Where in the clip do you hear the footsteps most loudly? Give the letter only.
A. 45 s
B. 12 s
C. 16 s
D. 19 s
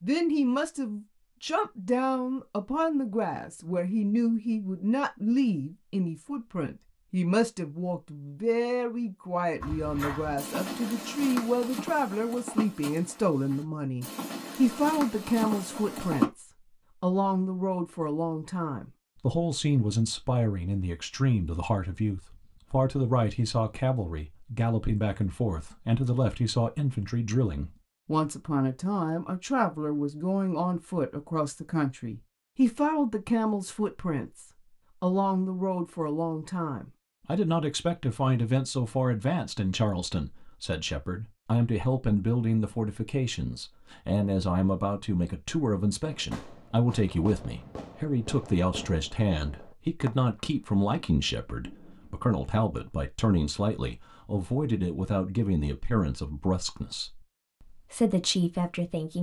C.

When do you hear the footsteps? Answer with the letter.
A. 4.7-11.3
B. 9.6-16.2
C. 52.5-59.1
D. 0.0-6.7
B.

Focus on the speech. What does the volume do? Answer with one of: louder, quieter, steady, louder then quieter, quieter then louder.
steady.